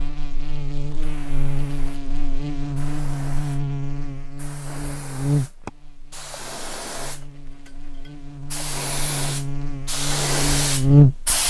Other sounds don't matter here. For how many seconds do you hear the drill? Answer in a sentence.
The drill can't be heard in this clip.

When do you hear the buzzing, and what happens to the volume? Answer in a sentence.
You can hear the buzzing from 0.0 to 11.4 s, getting quieter then louder.